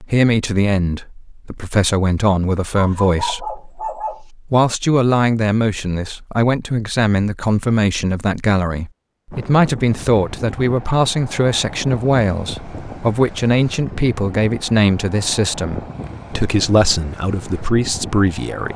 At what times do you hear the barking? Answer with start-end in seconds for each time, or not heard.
2.8-4.2.